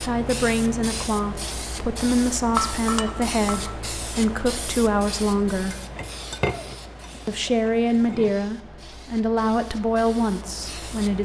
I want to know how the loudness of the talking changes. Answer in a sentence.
The volume of the talking stays about the same.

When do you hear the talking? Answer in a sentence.
You can hear the talking from 0.0 to 5.8 s and from 7.2 to 11.1 s.